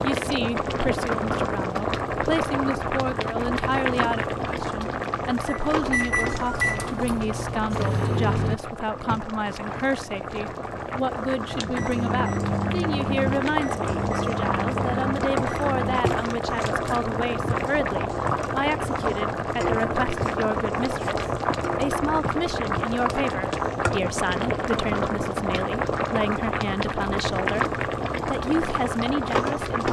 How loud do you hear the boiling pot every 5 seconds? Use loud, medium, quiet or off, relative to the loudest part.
loud, medium, loud, loud, loud, loud.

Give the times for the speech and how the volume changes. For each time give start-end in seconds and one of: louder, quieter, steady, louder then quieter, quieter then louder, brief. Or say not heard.
0.0-29.8 steady.